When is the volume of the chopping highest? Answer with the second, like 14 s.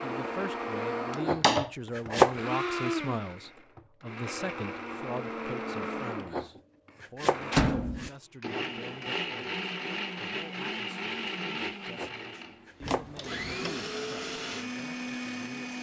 2 s.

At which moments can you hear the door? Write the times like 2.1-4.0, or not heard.
1.3-2.2, 7.5-8.1, 12.8-13.8.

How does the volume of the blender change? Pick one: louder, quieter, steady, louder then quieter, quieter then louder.
steady.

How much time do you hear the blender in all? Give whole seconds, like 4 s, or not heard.
16 s.